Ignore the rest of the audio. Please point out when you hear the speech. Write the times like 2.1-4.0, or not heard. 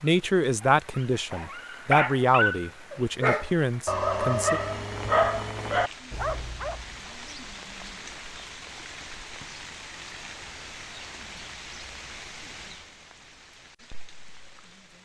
0.0-4.6.